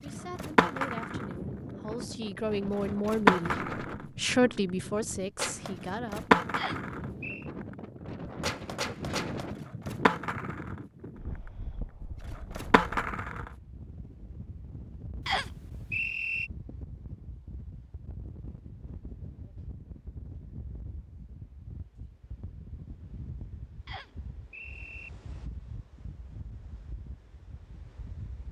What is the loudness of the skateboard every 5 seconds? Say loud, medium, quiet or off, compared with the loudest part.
loud, loud, medium, off, off, off.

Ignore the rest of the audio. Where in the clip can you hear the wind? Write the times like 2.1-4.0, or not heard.
0.0-28.4.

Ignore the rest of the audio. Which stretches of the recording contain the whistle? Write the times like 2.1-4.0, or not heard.
6.5-7.5, 15.2-16.5, 23.9-25.1.